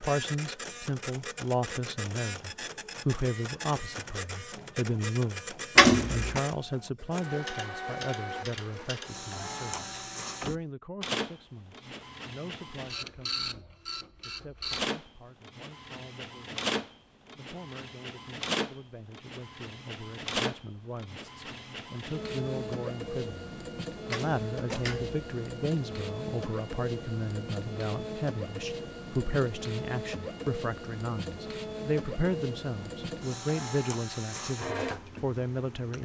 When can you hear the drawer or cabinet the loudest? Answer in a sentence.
The volume of the drawer or cabinet peaks at 6 seconds.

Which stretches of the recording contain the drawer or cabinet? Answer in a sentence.
The drawer or cabinet can be heard from 5.8 to 6.4 s and from 24.1 to 25.2 s.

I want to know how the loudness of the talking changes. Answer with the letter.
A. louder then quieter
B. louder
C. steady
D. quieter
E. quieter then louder
E.